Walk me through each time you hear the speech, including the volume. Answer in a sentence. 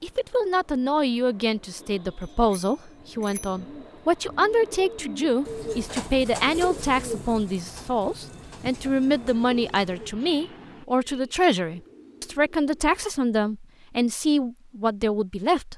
You can hear the speech from 0.0 to 15.7 s, at a steady volume.